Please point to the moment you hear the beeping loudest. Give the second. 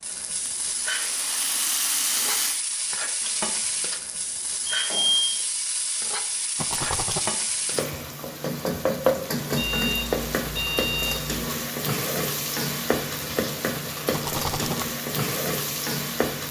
5 s.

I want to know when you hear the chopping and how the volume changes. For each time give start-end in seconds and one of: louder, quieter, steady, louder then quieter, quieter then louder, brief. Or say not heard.
not heard.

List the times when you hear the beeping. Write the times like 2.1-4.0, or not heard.
4.7-5.2, 9.6-11.4.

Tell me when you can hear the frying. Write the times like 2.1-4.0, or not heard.
0.0-16.4.